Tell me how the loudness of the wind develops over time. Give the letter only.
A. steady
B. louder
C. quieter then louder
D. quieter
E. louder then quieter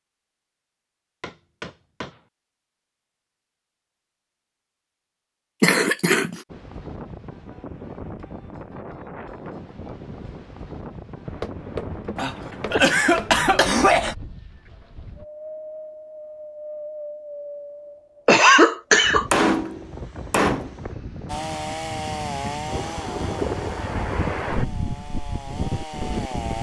B.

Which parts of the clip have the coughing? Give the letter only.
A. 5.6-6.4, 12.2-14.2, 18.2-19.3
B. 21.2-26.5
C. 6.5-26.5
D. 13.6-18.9
A.